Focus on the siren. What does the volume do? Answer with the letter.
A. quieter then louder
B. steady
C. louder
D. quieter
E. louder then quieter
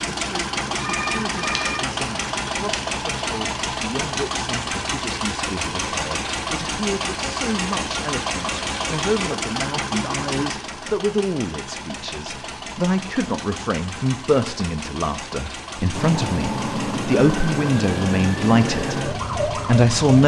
B.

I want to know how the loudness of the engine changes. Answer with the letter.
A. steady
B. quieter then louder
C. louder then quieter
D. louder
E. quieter
E.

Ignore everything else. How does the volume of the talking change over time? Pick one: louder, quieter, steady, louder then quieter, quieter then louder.
louder.